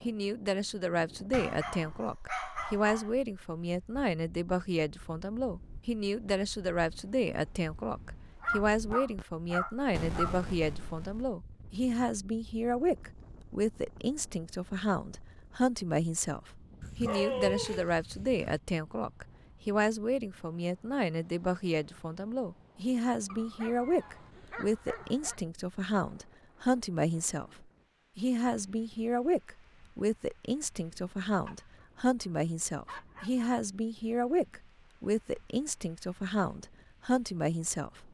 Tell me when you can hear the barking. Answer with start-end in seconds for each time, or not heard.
1.3-3.1, 8.4-10.3, 16.8-18.6, 23.2-25.4, 31.4-33.5.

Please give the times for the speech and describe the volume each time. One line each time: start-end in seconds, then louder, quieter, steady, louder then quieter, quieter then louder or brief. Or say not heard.
0.0-38.0 steady.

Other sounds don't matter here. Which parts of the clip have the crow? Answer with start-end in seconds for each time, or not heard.
not heard.